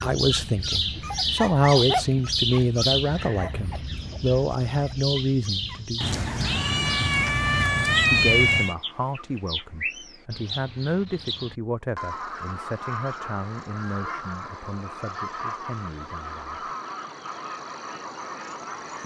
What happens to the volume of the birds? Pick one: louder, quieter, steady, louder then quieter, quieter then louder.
quieter.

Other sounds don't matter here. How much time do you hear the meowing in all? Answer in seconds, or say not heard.
3 s.